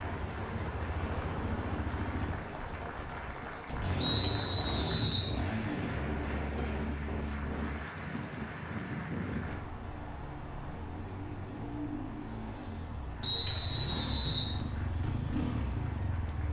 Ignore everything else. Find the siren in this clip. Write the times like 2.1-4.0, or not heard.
not heard.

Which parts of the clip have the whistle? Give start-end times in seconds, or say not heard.
4.0-5.3, 13.2-14.5.